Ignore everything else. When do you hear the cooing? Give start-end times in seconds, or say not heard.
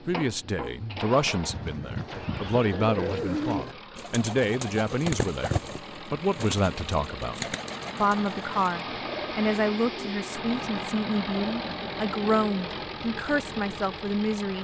1.3-13.2.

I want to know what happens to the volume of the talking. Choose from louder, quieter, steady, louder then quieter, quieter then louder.
steady.